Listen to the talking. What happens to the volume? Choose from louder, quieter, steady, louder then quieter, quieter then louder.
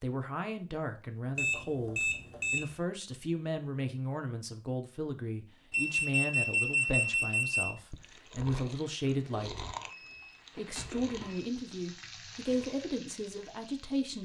steady.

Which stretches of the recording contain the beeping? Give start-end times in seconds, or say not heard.
1.4-2.7, 5.7-7.7, 9.9-11.4.